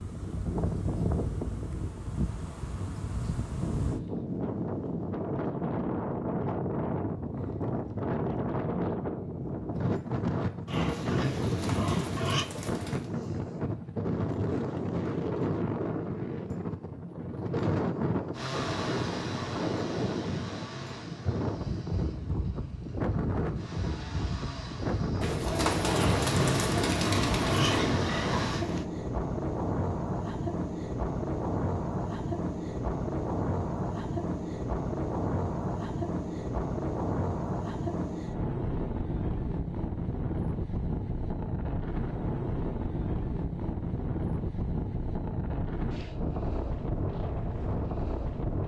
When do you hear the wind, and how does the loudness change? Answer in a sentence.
The wind can be heard from 0.0 to 48.6 s, at a steady volume.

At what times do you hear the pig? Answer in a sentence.
The pig can be heard from 10.7 to 12.4 s and from 25.9 to 28.9 s.